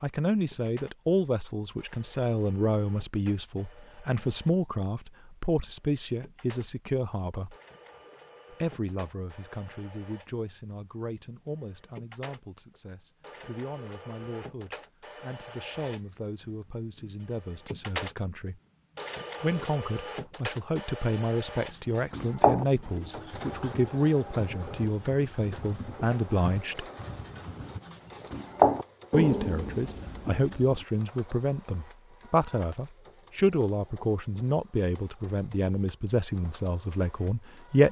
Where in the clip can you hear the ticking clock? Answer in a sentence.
You can't hear the ticking clock here.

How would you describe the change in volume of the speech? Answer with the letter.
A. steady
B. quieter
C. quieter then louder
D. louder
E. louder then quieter
C.